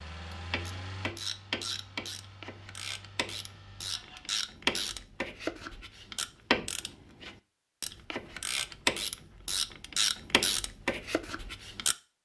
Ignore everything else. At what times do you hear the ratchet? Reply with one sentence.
You can hear the ratchet from 0.3 to 11.9 s.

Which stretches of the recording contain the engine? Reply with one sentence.
You can hear the engine from 0.0 to 4.3 s.